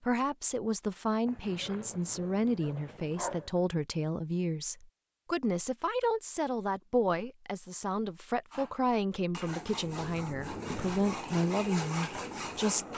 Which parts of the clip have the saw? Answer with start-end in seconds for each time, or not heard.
8.5-12.9.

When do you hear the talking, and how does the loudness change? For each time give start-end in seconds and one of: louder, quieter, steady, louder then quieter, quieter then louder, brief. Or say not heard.
0.0-12.9 steady.